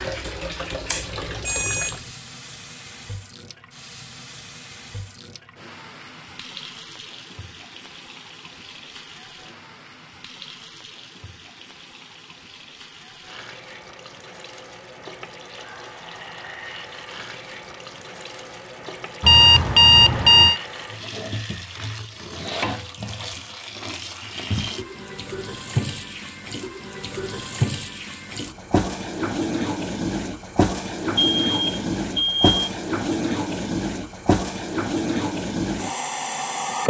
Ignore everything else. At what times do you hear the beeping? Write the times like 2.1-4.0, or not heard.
0.9-1.9, 19.2-20.6, 31.1-32.7.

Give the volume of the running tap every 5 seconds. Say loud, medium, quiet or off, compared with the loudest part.
medium, quiet, quiet, quiet, medium, loud, loud, loud.